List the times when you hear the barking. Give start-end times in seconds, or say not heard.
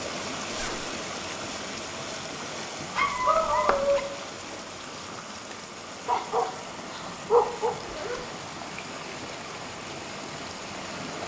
3.0-4.0, 6.0-7.8.